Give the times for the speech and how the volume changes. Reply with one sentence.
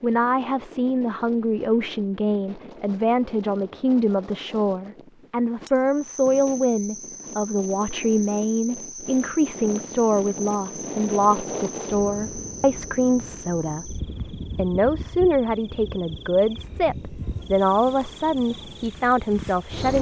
The speech can be heard from 0.0 to 19.9 s, at a steady volume.